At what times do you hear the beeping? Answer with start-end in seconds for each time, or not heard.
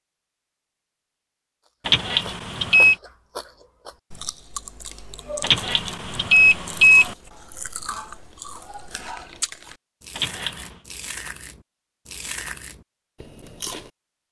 1.9-3.0, 5.4-7.2, 10.2-10.7.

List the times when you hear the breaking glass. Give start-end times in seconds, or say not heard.
not heard.